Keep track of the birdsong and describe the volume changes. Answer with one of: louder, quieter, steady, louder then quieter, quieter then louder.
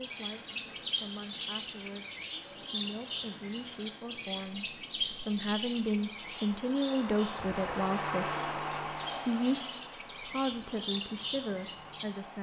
quieter then louder.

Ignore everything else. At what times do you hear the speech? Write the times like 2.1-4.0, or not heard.
0.0-8.4, 9.2-12.3.